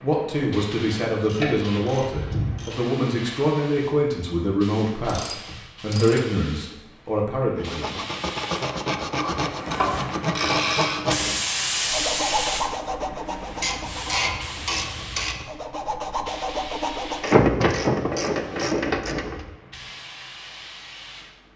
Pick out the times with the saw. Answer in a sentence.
You can hear the saw from 7.5 to 17.3 s.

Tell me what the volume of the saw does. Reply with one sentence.
The volume of the saw goes down, then up.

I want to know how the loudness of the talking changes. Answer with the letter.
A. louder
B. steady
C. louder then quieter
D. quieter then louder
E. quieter
B.